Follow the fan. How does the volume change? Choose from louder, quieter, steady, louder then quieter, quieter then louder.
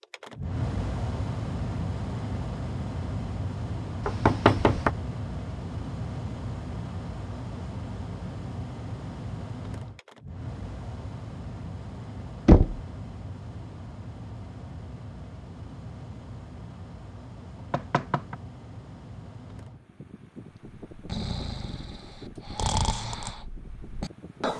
quieter.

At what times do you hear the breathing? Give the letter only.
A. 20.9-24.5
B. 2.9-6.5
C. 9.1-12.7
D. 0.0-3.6
A.